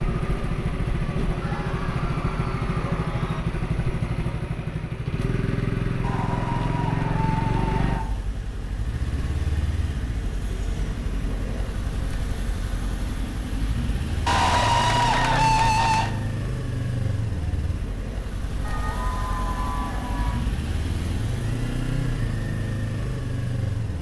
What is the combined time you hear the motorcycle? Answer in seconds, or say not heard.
24 s.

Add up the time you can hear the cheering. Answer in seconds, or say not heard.
8 s.